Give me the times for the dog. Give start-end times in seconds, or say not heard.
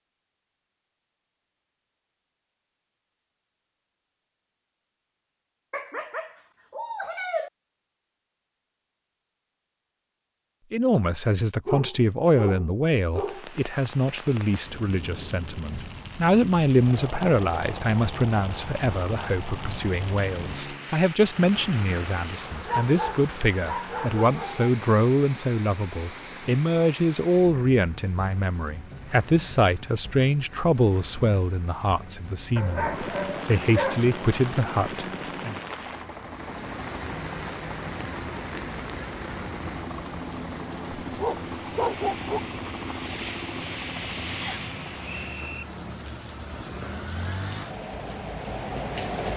5.7-7.5, 11.7-13.9, 22.6-24.7, 32.5-34.0, 41.1-42.4.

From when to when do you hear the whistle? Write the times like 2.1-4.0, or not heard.
44.4-45.6.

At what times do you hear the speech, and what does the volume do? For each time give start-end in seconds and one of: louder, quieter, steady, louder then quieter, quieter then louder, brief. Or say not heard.
10.7-35.5 steady.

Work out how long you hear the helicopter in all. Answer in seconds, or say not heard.
17 s.